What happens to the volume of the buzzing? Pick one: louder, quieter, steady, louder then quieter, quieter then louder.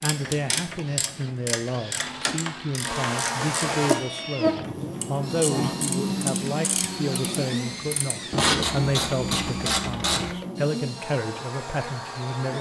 quieter.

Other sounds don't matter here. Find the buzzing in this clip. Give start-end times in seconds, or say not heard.
2.8-12.5.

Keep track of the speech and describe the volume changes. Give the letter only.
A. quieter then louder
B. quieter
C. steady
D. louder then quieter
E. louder
C.